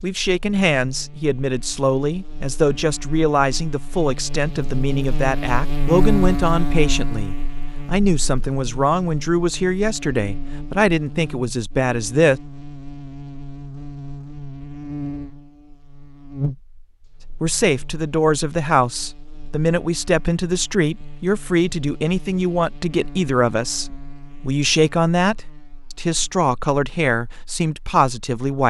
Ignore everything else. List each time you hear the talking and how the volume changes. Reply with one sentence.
You can hear the talking from 0.0 to 12.4 s, at a steady volume; and from 17.4 to 28.6 s, at a steady volume.